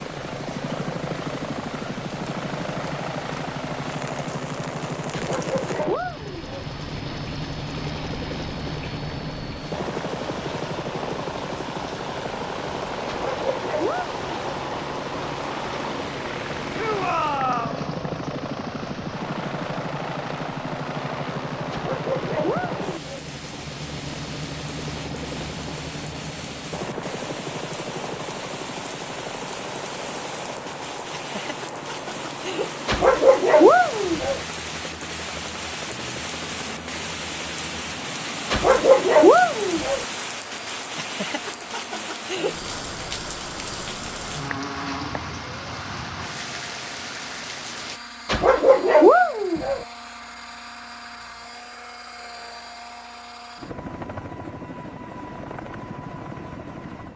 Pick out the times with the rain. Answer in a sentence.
You can hear the rain from 0.0 to 48.0 s.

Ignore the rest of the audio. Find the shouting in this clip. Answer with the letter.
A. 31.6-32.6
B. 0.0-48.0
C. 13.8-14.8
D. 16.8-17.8
D.